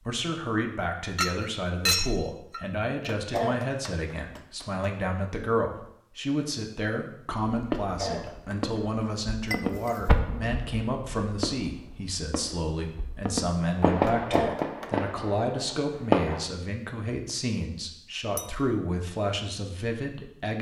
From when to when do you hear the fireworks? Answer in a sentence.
You can hear the fireworks from 7.5 to 16.4 s.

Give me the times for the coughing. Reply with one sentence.
You can hear the coughing from 3.1 to 4.8 s, from 7.8 to 9.1 s and from 14.0 to 14.9 s.